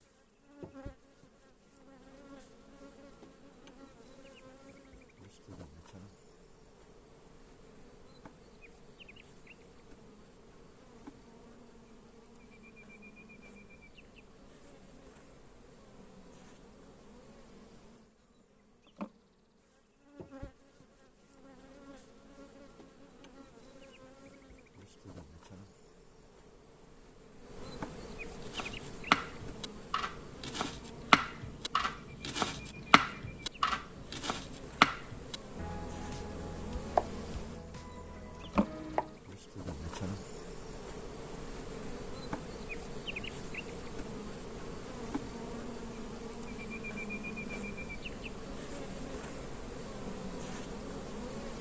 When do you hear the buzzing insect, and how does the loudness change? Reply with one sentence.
The buzzing insect can be heard from 0.0 to 51.5 s, getting louder.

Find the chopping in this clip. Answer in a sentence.
The chopping can be heard from 28.4 to 39.1 s.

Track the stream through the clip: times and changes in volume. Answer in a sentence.
The stream can't be heard in this clip.